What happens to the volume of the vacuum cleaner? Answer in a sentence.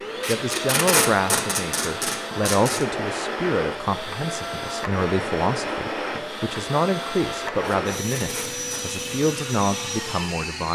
The loudness of the vacuum cleaner stays about the same.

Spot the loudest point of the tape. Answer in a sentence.
The loudest moment of the tape is at 1 second.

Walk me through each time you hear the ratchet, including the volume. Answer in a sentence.
You can't hear the ratchet here.